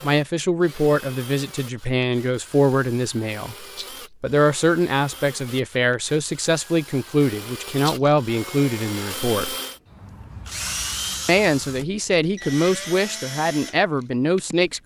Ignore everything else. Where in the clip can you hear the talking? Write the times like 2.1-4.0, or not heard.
0.0-9.6, 11.2-14.8.